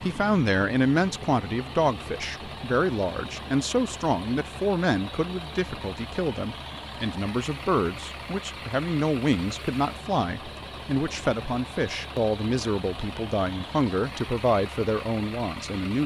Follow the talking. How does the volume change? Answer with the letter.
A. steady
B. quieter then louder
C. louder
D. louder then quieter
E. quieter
A.